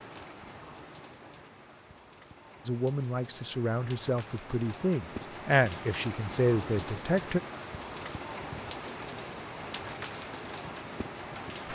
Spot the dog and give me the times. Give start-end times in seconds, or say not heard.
not heard.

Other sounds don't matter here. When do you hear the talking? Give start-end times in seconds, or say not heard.
2.6-7.4.